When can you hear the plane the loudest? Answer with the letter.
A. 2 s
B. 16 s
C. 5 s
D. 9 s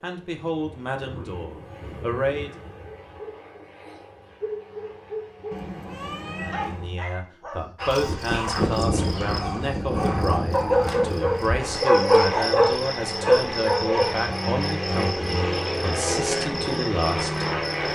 B.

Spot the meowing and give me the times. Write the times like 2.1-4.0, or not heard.
5.5-7.0.